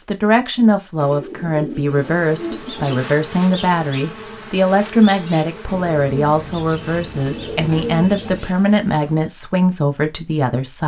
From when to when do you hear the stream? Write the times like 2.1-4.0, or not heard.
not heard.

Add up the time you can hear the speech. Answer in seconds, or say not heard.
11 s.